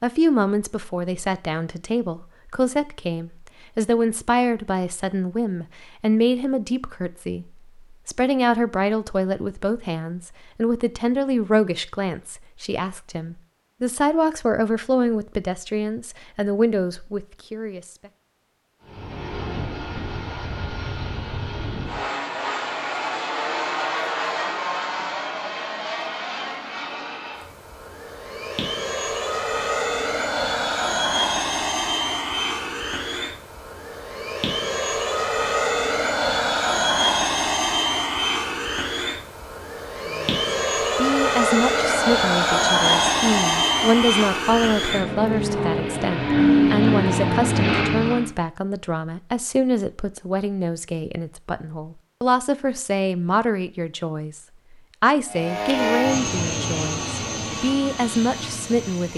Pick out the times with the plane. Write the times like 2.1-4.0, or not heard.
18.8-48.3, 55.2-59.1.